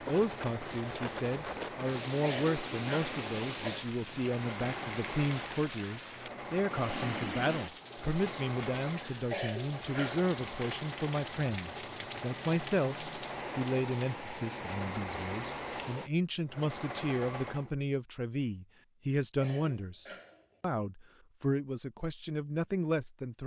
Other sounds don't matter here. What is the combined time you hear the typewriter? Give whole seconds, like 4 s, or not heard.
not heard.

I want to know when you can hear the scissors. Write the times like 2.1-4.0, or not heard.
not heard.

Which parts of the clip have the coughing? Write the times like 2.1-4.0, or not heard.
2.2-3.9, 9.3-10.2, 19.4-20.6.